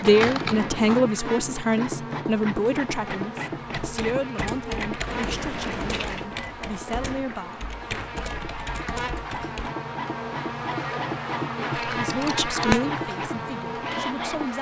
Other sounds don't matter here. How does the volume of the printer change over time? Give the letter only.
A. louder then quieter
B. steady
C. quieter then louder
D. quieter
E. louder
C.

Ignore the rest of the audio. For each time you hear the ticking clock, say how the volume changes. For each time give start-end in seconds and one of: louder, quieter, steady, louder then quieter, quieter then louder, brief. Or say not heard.
not heard.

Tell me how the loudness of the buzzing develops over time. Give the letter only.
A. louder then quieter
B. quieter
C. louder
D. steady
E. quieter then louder
C.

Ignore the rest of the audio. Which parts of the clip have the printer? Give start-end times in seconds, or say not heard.
0.0-14.5.